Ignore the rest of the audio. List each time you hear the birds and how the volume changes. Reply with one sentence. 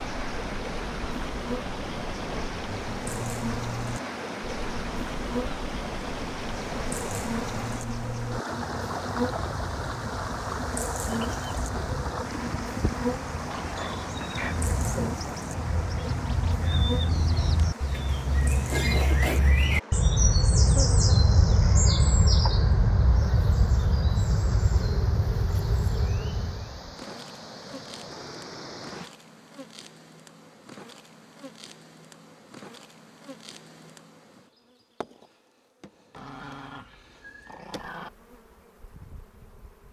You can hear the birds from 0.0 to 26.8 s, getting louder.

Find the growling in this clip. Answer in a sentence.
The growling can be heard from 13.5 to 14.6 s and from 36.1 to 38.1 s.